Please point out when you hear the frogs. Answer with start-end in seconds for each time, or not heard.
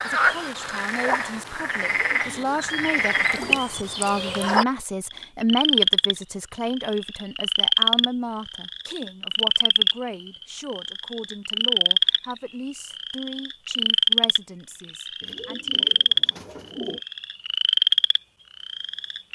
0.0-19.3.